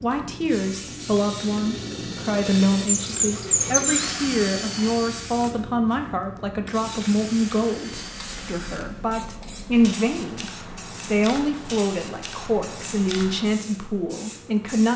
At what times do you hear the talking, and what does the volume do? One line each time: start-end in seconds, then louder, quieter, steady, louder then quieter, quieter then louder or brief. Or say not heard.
0.0-14.9 steady.